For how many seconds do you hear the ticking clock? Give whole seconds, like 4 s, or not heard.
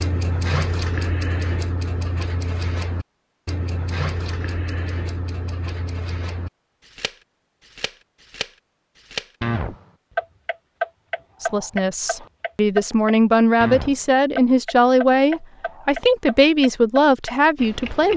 18 s.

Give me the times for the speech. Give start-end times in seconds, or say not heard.
11.4-18.1.